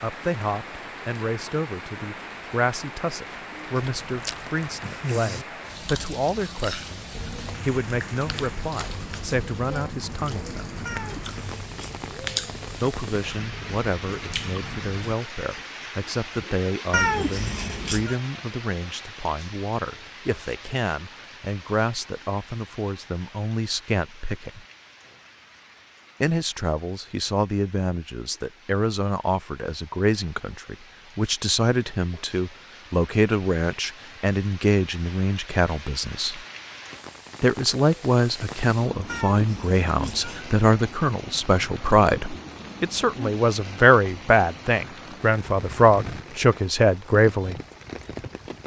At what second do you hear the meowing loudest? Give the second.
17 s.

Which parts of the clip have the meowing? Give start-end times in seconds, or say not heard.
10.8-11.9, 16.9-18.1, 39.0-40.5.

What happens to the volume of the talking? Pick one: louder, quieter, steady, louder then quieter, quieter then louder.
louder.